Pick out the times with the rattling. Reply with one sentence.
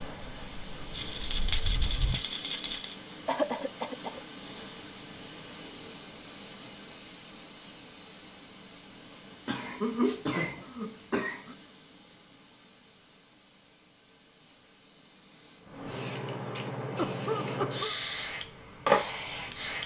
You can hear the rattling from 0.9 to 3.0 s.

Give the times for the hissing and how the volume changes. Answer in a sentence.
You can hear the hissing from 0.0 to 19.8 s, getting quieter then louder.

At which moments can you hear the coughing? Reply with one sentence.
You can hear the coughing from 3.2 to 4.2 s, from 9.4 to 11.6 s and from 16.9 to 17.9 s.